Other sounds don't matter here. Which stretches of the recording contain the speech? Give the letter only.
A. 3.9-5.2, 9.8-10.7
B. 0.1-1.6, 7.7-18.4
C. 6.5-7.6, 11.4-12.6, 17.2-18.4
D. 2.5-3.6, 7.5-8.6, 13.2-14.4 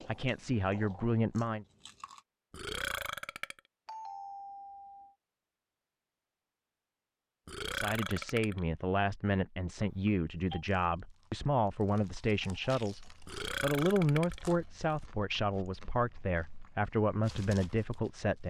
B.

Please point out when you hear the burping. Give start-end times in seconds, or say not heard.
2.5-3.6, 7.5-8.6, 13.2-14.4.